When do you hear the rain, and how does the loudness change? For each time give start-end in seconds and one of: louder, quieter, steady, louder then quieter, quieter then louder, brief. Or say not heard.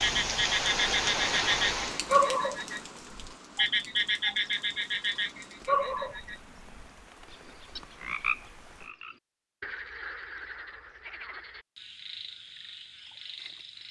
0.0-8.9 quieter.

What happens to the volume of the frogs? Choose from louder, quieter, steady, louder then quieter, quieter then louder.
quieter.